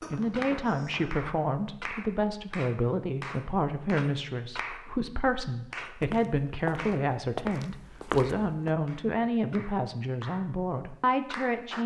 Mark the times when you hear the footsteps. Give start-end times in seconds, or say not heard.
6.0-8.7.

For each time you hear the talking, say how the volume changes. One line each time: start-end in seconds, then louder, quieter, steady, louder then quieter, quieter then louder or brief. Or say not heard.
0.1-11.8 steady.